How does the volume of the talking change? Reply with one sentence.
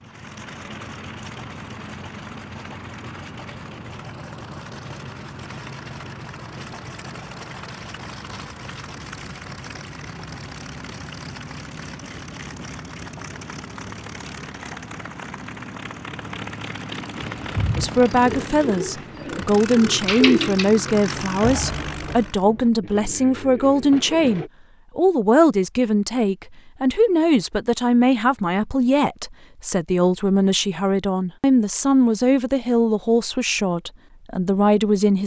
The volume of the talking stays about the same.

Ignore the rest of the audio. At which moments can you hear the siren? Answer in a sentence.
You can't hear the siren here.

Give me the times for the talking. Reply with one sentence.
You can hear the talking from 17.8 to 35.2 s.